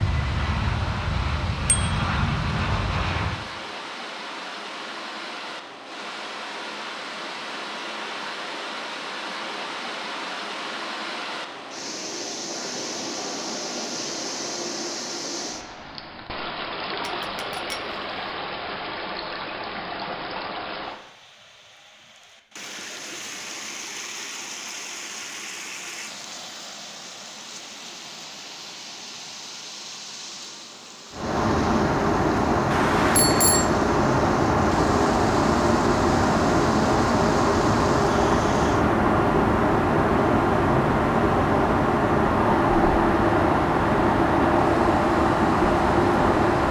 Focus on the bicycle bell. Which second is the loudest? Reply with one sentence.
The volume of the bicycle bell peaks at 33 seconds.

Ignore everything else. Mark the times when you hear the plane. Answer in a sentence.
You can hear the plane from 0.0 to 3.5 s and from 31.1 to 46.6 s.